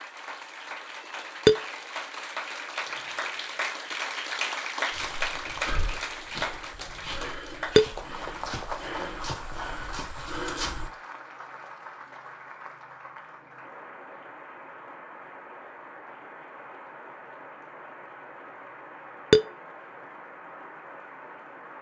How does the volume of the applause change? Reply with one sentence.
The volume of the applause goes down.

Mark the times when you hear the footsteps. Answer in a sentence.
You can hear the footsteps from 4.9 to 10.9 s.